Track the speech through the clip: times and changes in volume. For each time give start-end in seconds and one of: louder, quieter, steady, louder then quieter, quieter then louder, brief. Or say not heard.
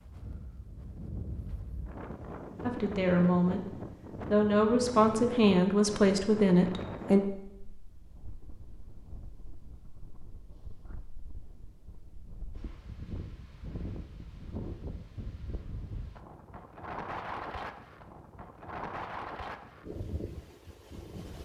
2.6-7.2 steady.